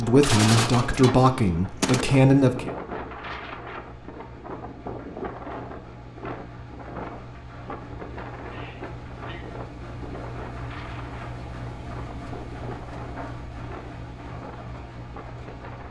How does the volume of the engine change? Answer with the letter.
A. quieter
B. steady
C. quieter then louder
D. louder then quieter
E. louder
E.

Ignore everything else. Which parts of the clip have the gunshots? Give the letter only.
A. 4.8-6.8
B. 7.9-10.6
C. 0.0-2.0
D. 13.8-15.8
C.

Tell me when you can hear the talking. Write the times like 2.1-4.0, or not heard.
0.0-2.7.